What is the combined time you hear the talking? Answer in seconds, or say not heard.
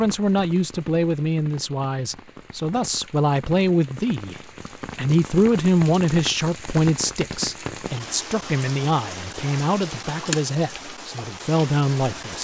12 s.